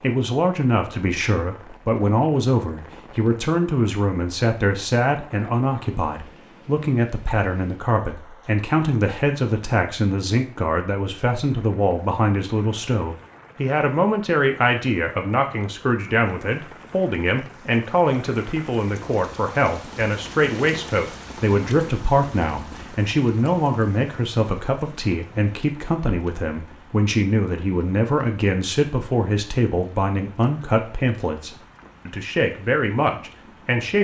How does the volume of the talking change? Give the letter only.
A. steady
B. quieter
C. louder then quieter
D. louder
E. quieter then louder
A.